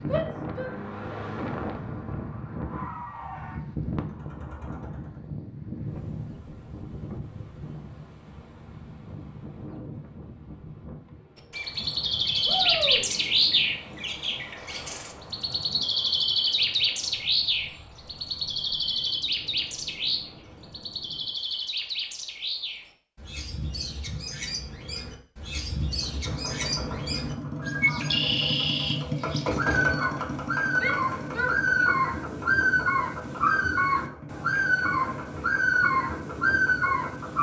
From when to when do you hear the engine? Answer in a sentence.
The engine can be heard from 0.0 to 5.3 s and from 25.9 to 37.3 s.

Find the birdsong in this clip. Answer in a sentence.
The birdsong can be heard from 11.5 to 37.3 s.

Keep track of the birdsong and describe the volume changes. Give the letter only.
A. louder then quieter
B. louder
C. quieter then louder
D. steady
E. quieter
C.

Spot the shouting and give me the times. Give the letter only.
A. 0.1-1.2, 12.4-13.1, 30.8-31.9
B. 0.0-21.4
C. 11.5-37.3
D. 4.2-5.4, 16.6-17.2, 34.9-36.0
A.